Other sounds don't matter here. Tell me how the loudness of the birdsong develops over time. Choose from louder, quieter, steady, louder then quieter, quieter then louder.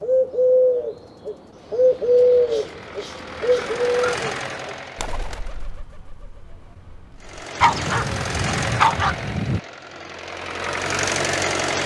quieter.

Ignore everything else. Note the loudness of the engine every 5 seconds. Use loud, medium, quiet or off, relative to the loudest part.
medium, medium, loud.